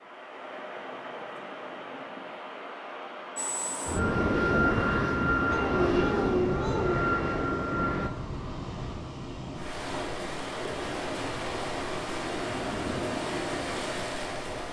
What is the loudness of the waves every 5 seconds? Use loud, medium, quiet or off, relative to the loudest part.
medium, medium, loud.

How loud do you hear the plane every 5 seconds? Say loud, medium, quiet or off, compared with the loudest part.
loud, loud, off.